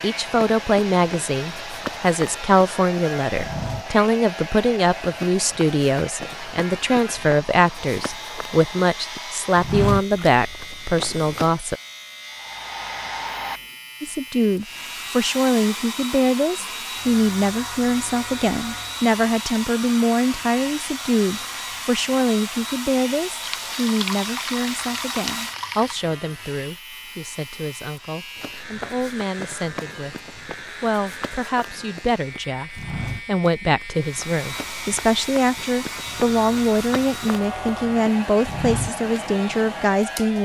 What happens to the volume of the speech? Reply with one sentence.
The loudness of the speech goes down, then up.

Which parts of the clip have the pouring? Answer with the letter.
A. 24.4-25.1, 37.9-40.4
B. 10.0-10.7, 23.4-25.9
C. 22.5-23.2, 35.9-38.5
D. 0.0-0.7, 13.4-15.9
B.